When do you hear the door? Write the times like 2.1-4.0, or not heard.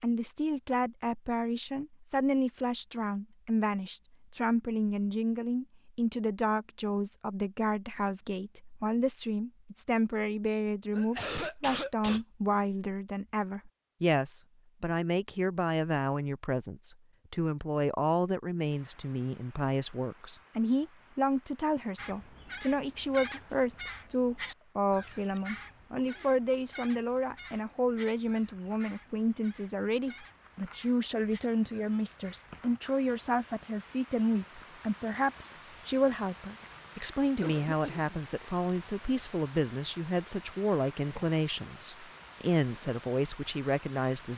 not heard.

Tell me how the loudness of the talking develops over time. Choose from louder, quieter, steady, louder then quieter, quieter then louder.
steady.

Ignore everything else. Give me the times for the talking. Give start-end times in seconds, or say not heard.
0.0-44.3.